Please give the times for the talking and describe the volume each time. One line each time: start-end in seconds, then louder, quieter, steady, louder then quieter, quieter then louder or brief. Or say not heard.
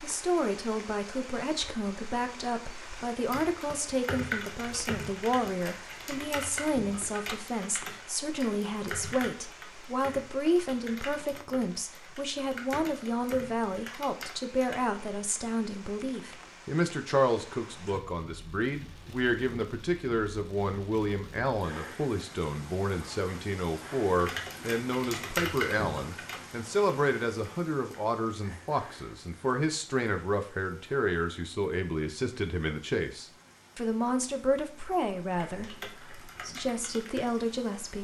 0.0-37.9 steady.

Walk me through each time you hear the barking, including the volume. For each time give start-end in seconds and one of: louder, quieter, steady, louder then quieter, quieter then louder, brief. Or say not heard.
not heard.